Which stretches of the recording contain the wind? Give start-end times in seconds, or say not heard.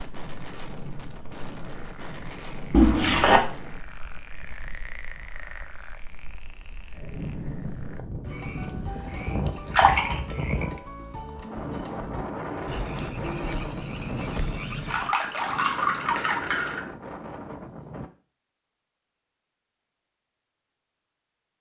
0.0-18.1.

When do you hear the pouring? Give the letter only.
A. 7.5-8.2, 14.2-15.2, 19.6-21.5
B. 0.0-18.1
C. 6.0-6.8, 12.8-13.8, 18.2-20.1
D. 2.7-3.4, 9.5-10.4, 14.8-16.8
D.